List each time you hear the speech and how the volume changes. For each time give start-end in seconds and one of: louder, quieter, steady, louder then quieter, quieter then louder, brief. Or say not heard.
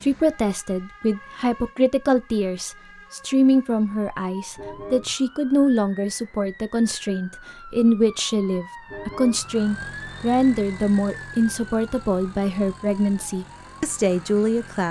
0.0-14.8 steady.